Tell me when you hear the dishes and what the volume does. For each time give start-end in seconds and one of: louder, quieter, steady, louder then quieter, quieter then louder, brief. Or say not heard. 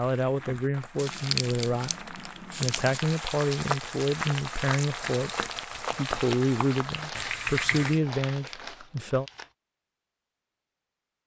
not heard.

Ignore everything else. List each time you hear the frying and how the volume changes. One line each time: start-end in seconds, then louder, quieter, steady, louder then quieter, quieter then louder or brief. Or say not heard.
0.0-8.1 louder.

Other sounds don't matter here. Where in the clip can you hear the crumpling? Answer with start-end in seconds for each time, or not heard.
0.9-3.0, 7.0-9.5.